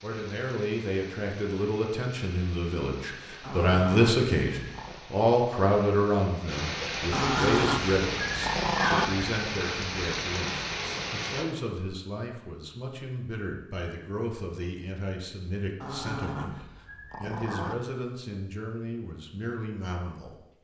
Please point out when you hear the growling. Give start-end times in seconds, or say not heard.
3.4-5.0, 7.1-9.1, 15.8-17.8.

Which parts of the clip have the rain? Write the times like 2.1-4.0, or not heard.
0.0-11.4.